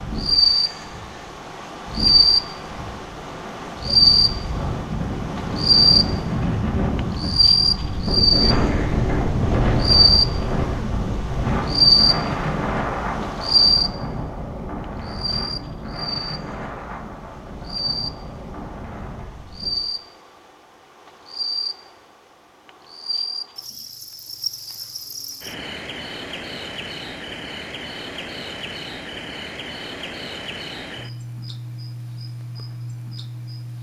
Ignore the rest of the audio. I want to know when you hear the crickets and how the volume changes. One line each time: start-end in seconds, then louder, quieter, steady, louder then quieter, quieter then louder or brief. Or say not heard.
0.0-33.7 quieter.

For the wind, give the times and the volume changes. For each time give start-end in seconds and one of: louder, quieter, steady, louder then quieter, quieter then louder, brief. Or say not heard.
0.0-19.8 louder then quieter.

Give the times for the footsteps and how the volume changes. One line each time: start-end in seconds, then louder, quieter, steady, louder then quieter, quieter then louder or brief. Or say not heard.
not heard.